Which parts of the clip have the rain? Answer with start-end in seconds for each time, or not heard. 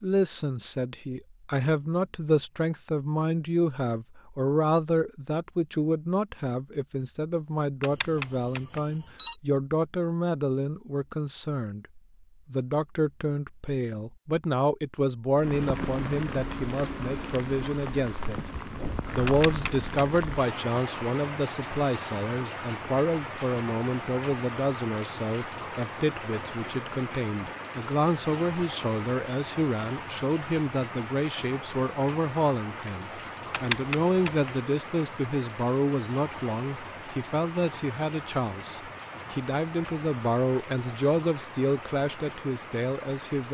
15.3-43.5.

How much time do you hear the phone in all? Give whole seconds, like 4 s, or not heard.
4 s.